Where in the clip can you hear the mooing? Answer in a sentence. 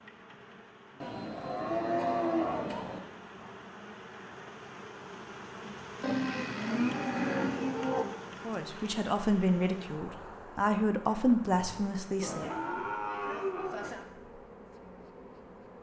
You can hear the mooing from 1.0 to 3.0 s, from 6.0 to 8.1 s and from 12.2 to 14.1 s.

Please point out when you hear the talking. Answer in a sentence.
The talking can be heard from 8.4 to 12.5 s.